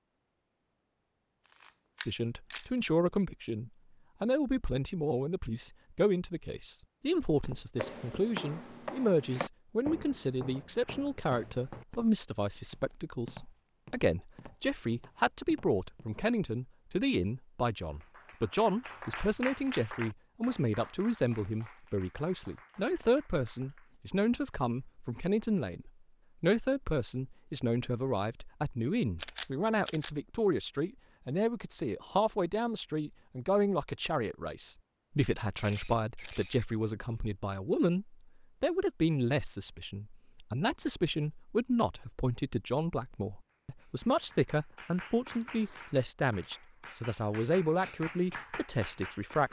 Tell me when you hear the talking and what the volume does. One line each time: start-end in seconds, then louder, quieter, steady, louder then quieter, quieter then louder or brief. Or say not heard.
2.0-49.4 steady.